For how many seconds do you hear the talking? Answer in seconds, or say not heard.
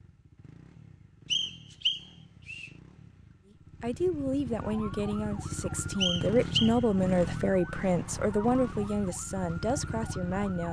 7 s.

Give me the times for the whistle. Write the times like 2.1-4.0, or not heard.
1.3-2.7, 6.0-6.8.